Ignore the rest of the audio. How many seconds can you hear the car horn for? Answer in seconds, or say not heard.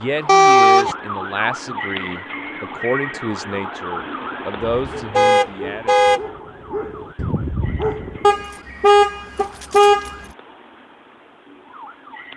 4 s.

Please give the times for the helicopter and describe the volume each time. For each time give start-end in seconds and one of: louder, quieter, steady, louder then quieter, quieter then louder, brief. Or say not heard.
not heard.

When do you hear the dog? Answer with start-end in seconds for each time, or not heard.
4.7-8.4.